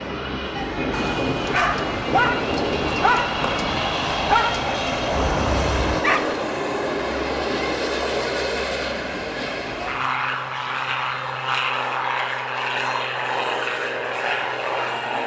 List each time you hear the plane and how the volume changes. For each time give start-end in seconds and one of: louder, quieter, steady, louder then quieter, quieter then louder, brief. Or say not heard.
0.0-15.2 steady.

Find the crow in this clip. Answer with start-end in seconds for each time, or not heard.
not heard.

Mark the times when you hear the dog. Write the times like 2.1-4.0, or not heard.
0.9-6.3.